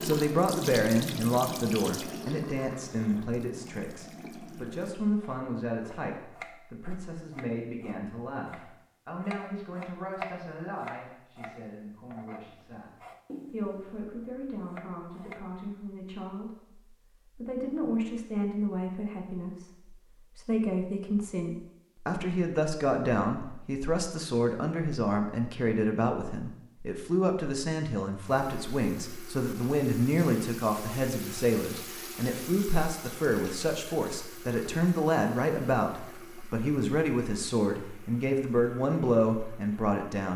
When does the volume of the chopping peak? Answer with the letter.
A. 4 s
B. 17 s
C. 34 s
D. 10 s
D.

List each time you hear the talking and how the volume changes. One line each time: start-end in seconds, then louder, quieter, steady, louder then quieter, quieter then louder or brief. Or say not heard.
0.0-12.9 quieter
13.5-40.3 louder.